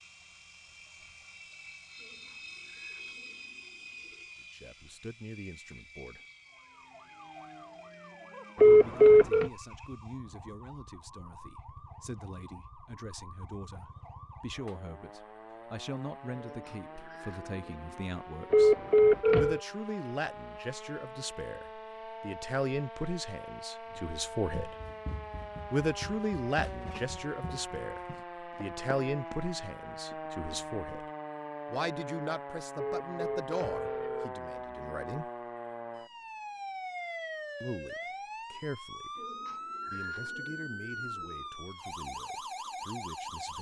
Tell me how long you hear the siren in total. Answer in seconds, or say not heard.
37 s.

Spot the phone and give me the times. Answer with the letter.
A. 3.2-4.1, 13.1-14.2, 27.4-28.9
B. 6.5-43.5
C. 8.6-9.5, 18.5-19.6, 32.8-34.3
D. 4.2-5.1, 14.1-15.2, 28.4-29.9
C.